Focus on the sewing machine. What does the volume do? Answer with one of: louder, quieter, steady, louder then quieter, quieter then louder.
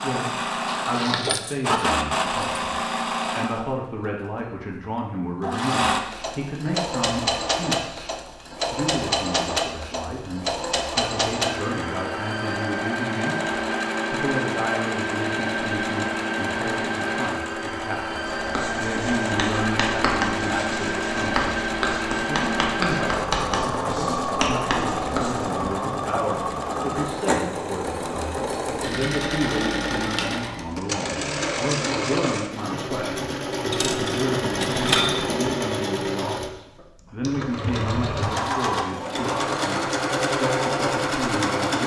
steady.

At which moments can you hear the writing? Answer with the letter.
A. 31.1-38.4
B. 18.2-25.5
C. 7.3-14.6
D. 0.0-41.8
B.